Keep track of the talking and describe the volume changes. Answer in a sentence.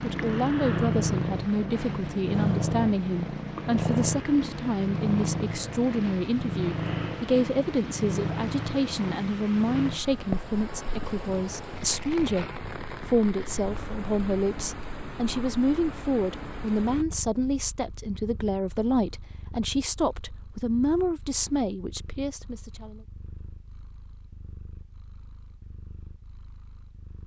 The loudness of the talking stays about the same.